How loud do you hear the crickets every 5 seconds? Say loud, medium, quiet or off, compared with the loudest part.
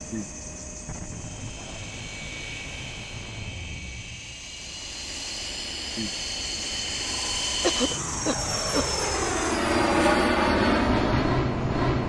medium, loud, off.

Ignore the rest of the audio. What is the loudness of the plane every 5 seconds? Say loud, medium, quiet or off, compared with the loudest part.
quiet, medium, loud.